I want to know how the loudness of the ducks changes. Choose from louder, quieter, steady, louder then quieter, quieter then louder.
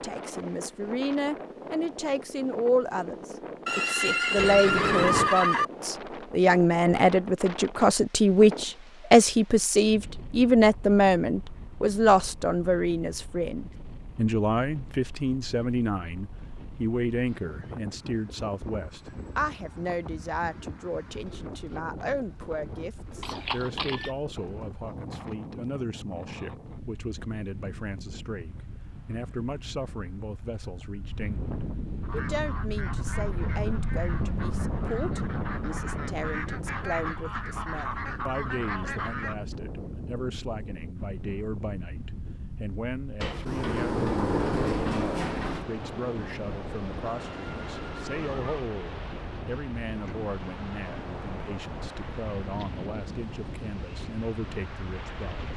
louder.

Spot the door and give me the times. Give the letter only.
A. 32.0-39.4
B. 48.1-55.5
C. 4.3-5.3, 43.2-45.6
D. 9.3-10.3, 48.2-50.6
C.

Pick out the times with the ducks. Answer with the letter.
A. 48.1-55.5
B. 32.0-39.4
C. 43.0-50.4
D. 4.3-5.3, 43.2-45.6
B.